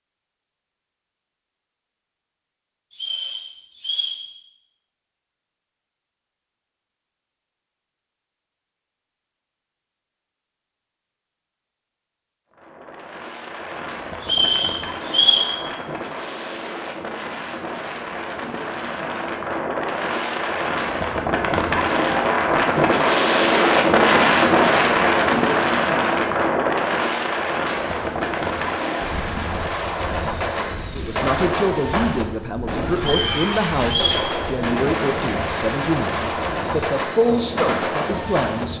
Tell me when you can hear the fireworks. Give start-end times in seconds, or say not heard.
27.6-38.6.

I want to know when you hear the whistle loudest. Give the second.
15 s.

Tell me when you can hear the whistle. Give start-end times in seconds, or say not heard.
2.9-4.2, 14.2-15.5, 33.0-34.3.